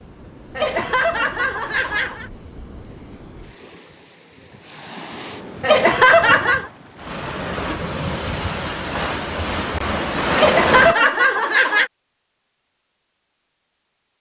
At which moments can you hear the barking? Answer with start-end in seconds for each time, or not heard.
not heard.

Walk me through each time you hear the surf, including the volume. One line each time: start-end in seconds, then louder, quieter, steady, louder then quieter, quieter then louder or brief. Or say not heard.
0.0-10.9 louder.